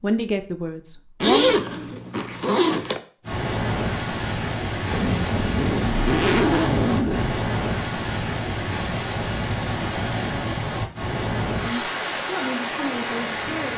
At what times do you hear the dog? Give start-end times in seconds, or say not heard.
not heard.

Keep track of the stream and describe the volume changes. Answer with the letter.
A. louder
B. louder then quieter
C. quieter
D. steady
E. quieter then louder
D.